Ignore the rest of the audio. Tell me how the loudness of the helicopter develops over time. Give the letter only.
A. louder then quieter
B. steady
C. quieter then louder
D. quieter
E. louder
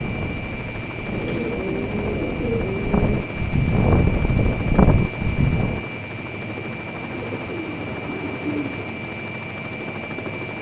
B.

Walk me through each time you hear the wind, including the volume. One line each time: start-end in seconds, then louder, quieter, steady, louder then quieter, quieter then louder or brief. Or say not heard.
0.0-5.8 louder.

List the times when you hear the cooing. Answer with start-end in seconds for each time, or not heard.
1.1-3.3, 7.0-8.9.